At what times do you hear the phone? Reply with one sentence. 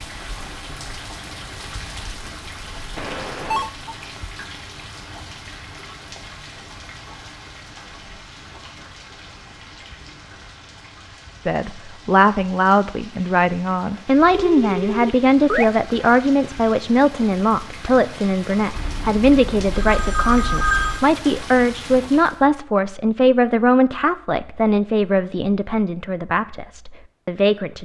The phone can be heard from 3.0 to 3.7 s, from 14.3 to 15.7 s and from 18.8 to 21.0 s.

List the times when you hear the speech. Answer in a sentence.
You can hear the speech from 11.4 to 27.7 s.